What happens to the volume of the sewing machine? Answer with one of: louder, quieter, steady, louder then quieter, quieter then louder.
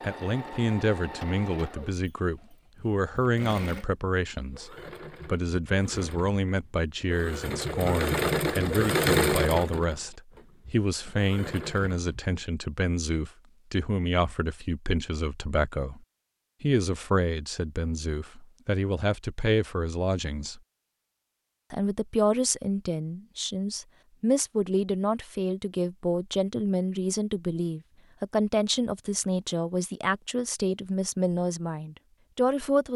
louder then quieter.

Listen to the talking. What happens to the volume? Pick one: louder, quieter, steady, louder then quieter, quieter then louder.
steady.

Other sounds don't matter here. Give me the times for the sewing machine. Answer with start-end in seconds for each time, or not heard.
0.0-12.4.